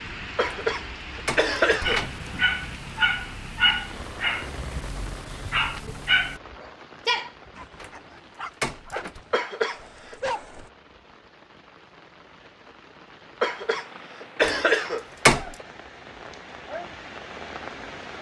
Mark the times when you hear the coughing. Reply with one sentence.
The coughing can be heard from 0.3 to 2.0 s, from 9.3 to 10.2 s and from 13.4 to 15.1 s.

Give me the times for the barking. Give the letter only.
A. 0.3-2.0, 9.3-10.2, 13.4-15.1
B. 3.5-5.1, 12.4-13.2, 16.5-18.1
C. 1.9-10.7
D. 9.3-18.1
C.